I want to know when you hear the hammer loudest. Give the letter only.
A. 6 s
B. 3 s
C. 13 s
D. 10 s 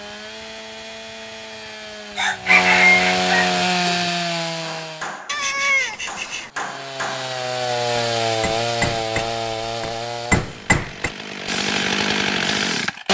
D.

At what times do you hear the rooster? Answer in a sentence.
The rooster can be heard from 2.1 to 4.0 s.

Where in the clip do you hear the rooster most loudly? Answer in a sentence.
The loudest moment of the rooster is at 3 seconds.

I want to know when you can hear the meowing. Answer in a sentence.
The meowing can be heard from 5.2 to 6.5 s.